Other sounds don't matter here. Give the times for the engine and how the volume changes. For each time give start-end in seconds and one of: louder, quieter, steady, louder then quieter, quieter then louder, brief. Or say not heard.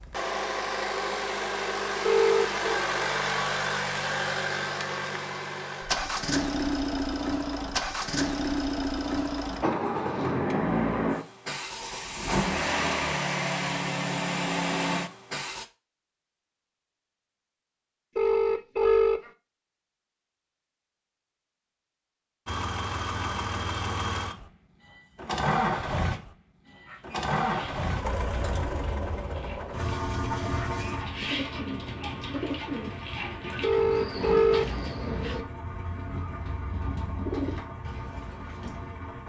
0.0-15.7 steady
22.4-39.2 quieter.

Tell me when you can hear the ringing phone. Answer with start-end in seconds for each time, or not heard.
2.0-2.7, 18.1-19.3, 33.6-34.8.